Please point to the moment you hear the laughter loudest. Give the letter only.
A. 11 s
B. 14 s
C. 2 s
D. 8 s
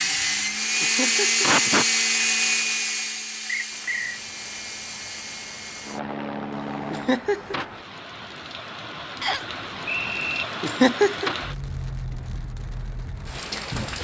A.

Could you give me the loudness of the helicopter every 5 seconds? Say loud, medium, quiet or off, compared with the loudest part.
loud, medium, off.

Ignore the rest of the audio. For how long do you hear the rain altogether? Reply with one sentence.
You can hear the rain for 10 seconds altogether.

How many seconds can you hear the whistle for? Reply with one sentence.
You can hear the whistle for 2 seconds altogether.